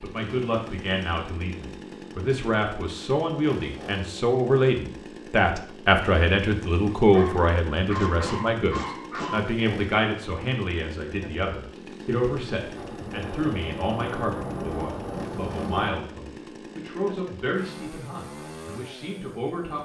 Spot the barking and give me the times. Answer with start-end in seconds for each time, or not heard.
7.0-9.4.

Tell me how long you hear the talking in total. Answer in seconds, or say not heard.
20 s.